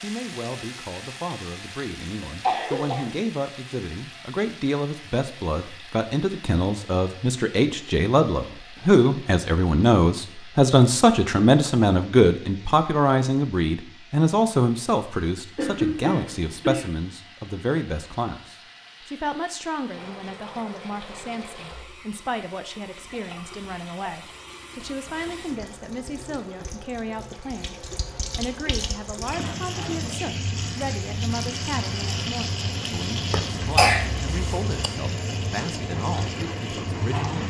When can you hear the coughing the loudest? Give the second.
34 s.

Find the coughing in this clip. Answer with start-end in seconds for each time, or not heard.
2.2-3.1, 15.6-16.9, 33.3-34.9.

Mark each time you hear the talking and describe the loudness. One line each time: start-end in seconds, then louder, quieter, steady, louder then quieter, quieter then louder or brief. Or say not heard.
0.0-37.4 louder then quieter.